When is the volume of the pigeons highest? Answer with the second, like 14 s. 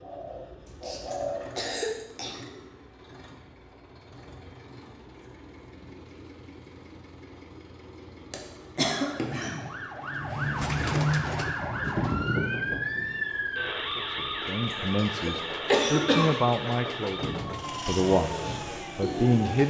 11 s.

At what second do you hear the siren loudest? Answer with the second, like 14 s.
13 s.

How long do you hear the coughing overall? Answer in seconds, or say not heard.
5 s.